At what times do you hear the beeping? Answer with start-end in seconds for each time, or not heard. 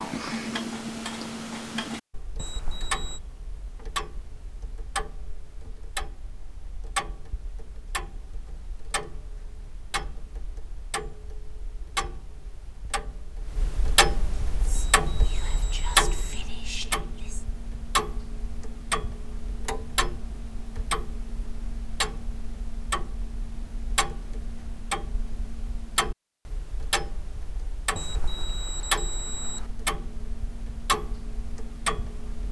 2.4-3.2, 14.8-16.4, 27.9-29.6.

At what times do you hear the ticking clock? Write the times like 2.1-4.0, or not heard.
0.0-32.4.